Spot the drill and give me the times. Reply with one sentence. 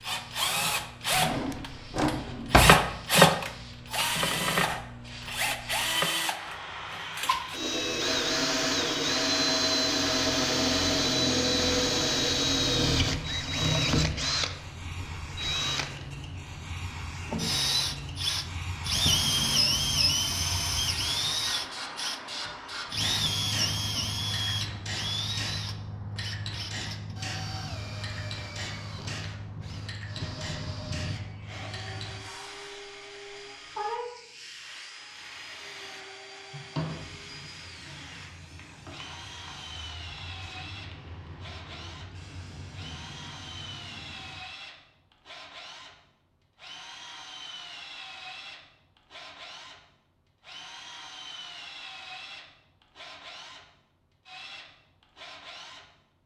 The drill can be heard from 0.0 to 55.9 s.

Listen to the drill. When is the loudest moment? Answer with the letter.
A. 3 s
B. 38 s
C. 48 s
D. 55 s
A.